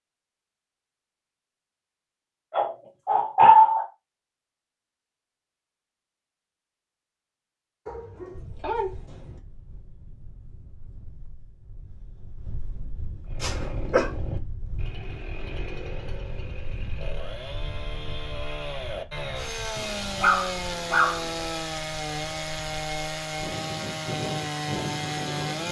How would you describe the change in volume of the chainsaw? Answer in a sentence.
The volume of the chainsaw goes up.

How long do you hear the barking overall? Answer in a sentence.
You can hear the barking for 5 seconds altogether.